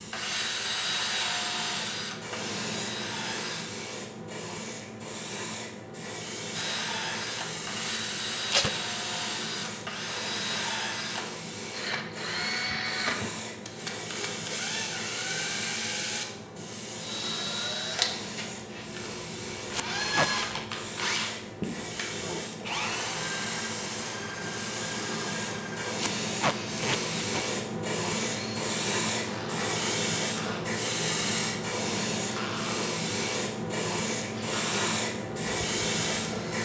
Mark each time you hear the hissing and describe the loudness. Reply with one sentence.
You can hear the hissing from 0.0 to 36.6 s, getting louder.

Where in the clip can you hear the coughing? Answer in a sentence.
The coughing can't be heard in this clip.